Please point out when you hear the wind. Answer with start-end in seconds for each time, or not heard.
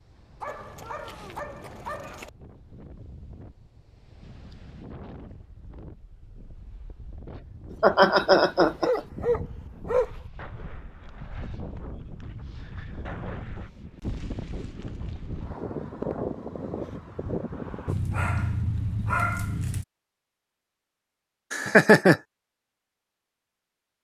0.0-17.9.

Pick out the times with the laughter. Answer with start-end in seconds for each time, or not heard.
7.8-9.0, 21.5-22.2.